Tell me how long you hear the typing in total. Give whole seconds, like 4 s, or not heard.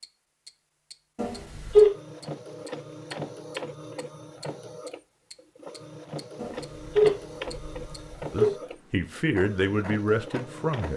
not heard.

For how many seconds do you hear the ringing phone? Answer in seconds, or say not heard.
3 s.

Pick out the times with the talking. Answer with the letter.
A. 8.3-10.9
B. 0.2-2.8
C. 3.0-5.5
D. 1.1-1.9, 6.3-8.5
A.